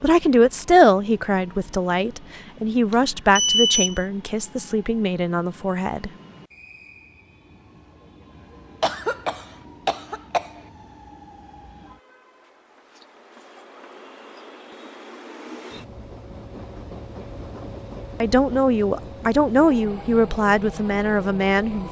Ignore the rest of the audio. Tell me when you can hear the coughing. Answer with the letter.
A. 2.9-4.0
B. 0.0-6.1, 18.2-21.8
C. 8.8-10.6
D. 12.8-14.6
C.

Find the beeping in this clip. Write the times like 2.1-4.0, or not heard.
2.9-4.0.